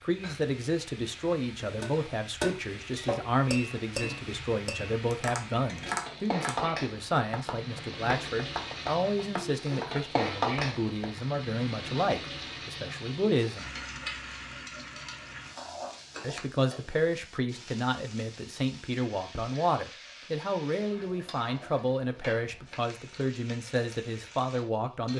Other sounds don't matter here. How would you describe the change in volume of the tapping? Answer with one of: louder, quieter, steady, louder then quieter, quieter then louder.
quieter.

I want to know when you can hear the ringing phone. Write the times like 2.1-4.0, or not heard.
not heard.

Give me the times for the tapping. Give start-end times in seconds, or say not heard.
1.8-11.2.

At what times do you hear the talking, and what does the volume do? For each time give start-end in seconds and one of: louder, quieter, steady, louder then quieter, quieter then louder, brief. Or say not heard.
0.0-13.7 steady
16.2-25.1 steady.